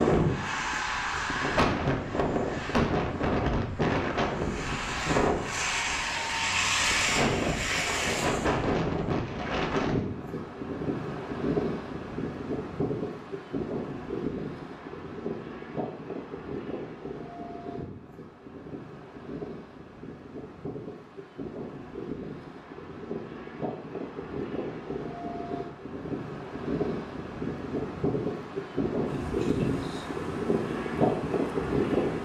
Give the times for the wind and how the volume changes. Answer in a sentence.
You can hear the wind from 0.0 to 32.2 s, getting quieter then louder.